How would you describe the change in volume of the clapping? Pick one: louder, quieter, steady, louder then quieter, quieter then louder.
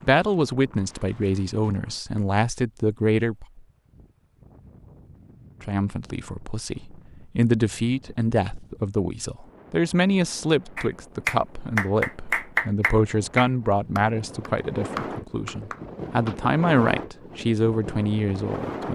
quieter.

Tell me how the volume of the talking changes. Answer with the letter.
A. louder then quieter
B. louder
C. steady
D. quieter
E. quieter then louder
C.